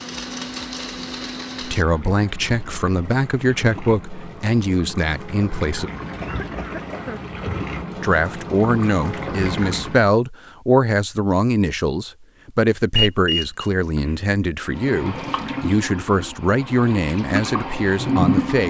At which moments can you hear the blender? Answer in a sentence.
You can hear the blender from 0.0 to 1.9 s.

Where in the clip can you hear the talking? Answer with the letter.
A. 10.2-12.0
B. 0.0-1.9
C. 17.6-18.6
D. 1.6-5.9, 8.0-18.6
D.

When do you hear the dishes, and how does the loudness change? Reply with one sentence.
You can't hear the dishes here.